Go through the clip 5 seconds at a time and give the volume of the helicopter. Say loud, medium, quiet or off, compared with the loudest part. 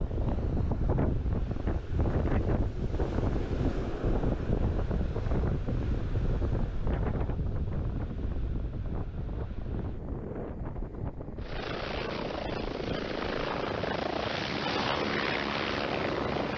off, off, loud, loud.